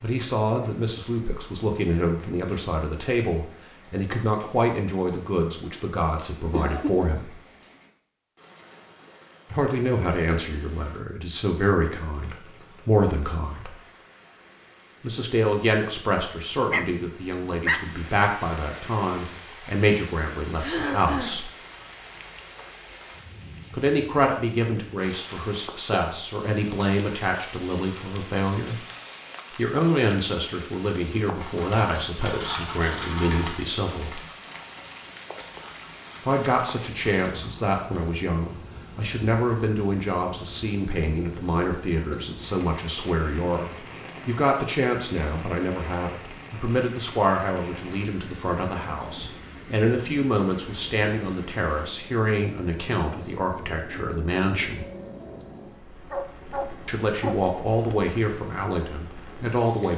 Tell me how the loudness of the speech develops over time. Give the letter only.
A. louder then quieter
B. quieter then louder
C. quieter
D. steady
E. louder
D.